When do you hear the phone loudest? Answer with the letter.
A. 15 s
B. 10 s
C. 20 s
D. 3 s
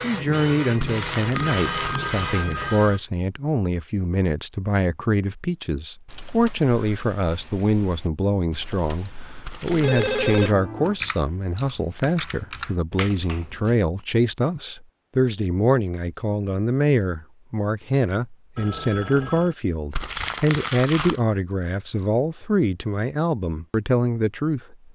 B.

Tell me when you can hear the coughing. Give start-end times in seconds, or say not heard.
not heard.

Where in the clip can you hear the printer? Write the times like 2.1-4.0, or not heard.
0.0-3.0.